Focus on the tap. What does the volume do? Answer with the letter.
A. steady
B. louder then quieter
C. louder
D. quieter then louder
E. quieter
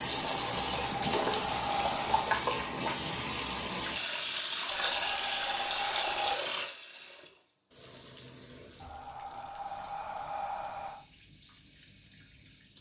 E.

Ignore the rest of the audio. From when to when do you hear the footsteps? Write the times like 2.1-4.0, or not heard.
not heard.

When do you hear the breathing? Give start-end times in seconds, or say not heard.
0.3-2.3, 4.7-6.4, 8.8-11.1.